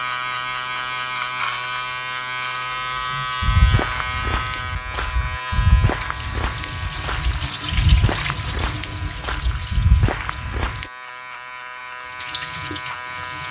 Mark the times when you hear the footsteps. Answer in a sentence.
The footsteps can be heard from 3.4 to 10.8 s.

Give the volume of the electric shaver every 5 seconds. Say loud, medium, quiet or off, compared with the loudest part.
loud, medium, medium.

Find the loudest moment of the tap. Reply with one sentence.
The volume of the tap peaks at 8 seconds.